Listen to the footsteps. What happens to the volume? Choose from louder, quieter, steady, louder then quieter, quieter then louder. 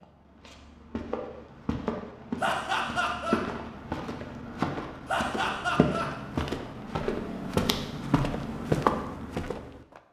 louder.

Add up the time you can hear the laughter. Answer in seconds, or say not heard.
2 s.